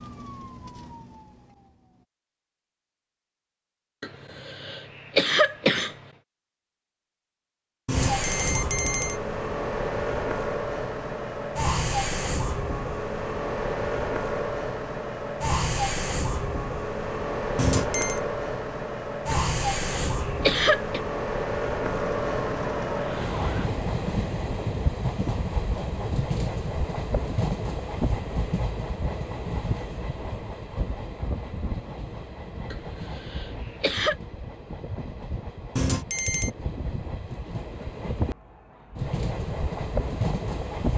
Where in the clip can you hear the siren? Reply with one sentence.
You can hear the siren from 0.0 to 2.0 s and from 21.8 to 23.7 s.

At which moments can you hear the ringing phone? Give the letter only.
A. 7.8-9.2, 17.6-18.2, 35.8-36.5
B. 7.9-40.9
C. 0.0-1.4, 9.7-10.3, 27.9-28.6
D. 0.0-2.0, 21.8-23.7
A.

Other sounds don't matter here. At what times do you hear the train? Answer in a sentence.
You can hear the train from 7.9 to 40.9 s.